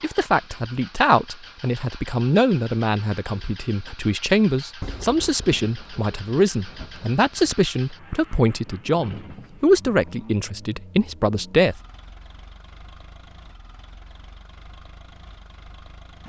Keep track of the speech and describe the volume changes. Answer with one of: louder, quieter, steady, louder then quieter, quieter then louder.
steady.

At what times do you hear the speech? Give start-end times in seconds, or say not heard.
0.0-11.8.